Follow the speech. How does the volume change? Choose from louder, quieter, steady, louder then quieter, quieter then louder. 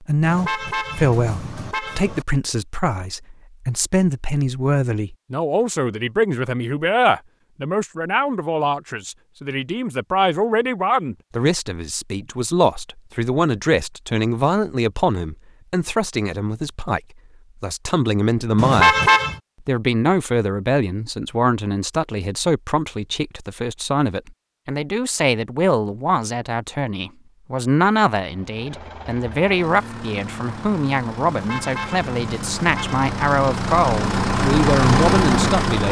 steady.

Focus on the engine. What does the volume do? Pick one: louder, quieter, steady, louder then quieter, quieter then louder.
louder.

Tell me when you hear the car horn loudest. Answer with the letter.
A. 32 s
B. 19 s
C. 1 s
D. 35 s
B.